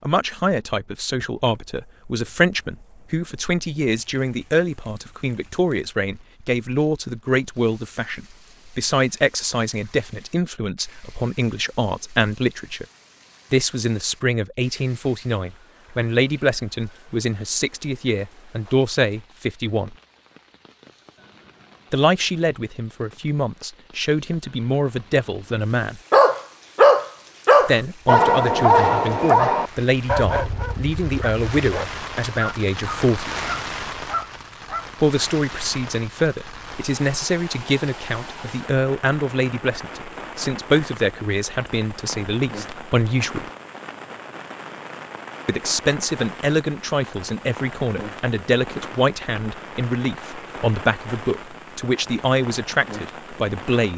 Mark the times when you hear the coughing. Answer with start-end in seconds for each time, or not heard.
not heard.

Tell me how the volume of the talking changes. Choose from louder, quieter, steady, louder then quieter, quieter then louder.
steady.